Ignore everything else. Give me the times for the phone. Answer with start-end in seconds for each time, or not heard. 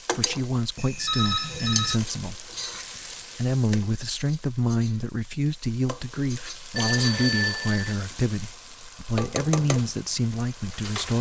0.8-2.0, 6.8-8.0.